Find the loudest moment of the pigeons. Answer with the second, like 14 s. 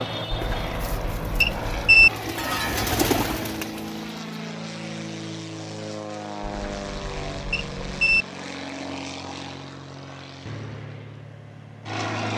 3 s.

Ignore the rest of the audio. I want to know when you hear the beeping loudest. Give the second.
2 s.